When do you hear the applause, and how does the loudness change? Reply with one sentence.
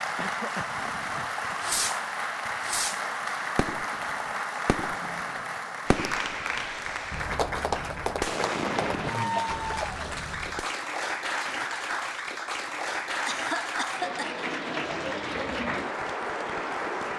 You can hear the applause from 0.0 to 17.1 s, at a steady volume.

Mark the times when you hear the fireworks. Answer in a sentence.
The fireworks can be heard from 0.7 to 10.8 s.